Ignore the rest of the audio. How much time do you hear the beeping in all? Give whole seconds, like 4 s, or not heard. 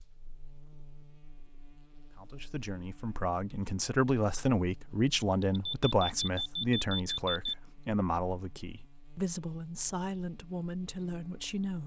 2 s.